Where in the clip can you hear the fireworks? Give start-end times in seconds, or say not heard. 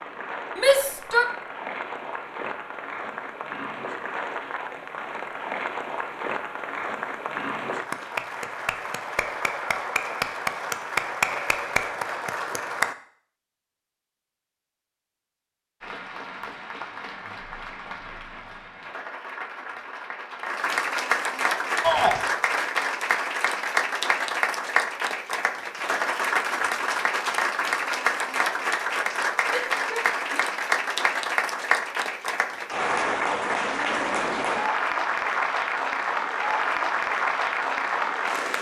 not heard.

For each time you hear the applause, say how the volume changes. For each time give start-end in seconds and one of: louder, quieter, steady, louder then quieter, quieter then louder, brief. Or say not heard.
0.0-12.9 louder
15.8-38.5 louder.